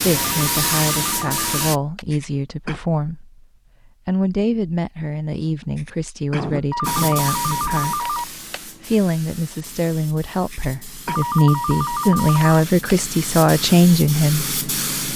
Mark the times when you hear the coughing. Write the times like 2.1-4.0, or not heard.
2.1-2.8, 5.8-7.2, 10.5-11.2.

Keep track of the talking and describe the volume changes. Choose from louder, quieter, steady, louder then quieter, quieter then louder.
louder.